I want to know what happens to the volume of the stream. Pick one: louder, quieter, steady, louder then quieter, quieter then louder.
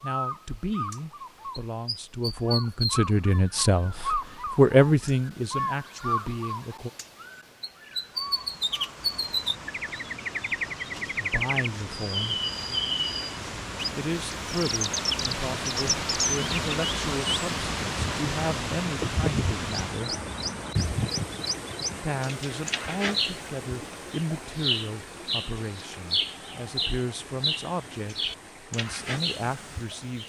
louder then quieter.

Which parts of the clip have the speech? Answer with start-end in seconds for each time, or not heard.
0.0-6.9, 11.2-12.3, 13.9-20.1, 22.0-30.2.